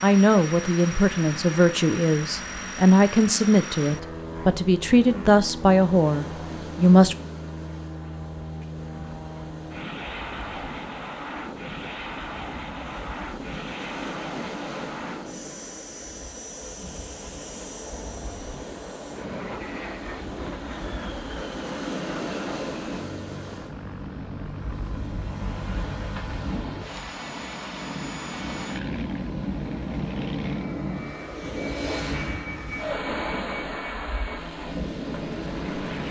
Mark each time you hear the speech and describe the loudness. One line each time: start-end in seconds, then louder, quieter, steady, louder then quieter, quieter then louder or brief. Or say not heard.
0.0-7.2 steady.